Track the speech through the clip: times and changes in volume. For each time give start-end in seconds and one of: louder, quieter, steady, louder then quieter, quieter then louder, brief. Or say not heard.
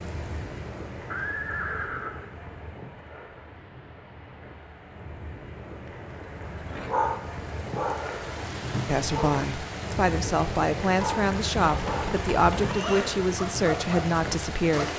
8.8-14.9 steady.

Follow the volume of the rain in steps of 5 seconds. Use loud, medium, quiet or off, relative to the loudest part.
medium, loud, loud.